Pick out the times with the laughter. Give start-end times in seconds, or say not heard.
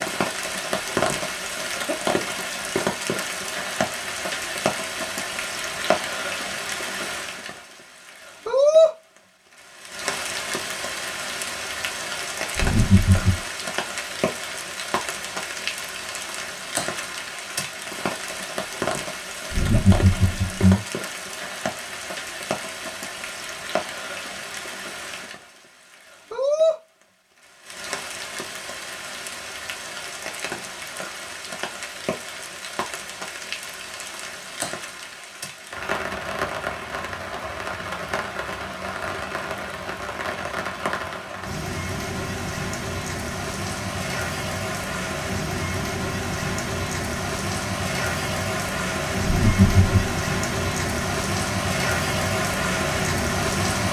12.6-13.4, 19.5-20.9, 49.2-50.0.